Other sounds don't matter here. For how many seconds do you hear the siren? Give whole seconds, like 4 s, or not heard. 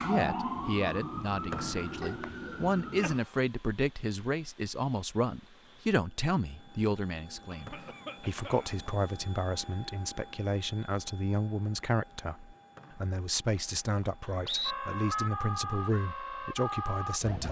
6 s.